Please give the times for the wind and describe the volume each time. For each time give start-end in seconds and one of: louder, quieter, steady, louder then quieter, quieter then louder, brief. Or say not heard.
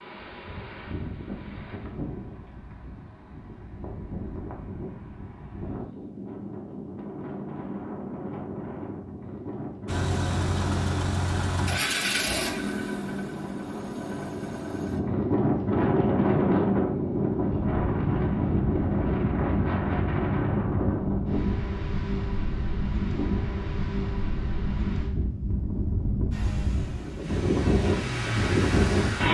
0.0-29.2 louder.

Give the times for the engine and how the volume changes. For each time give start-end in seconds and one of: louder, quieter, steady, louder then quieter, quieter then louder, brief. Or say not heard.
9.8-15.0 quieter
26.3-29.2 brief.